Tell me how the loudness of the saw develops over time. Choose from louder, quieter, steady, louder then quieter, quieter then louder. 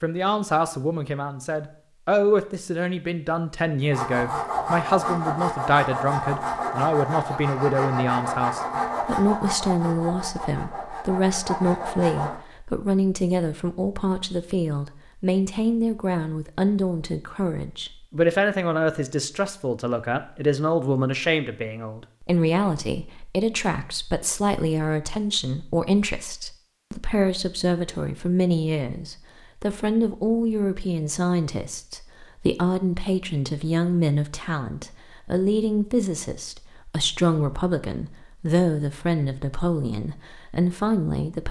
quieter.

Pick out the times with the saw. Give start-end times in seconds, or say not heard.
3.9-12.4.